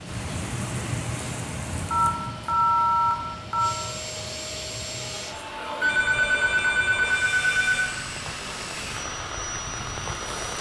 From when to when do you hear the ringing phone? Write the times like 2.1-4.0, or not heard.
1.9-3.7, 5.8-7.9.